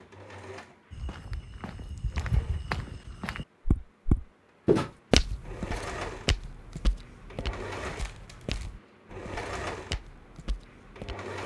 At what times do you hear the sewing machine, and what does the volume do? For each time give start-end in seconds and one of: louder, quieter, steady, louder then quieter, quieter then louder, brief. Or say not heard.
0.0-11.4 quieter then louder.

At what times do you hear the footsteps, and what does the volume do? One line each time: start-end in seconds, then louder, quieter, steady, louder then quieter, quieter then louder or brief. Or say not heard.
0.9-11.2 louder then quieter.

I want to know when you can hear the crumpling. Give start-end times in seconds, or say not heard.
8.0-8.7.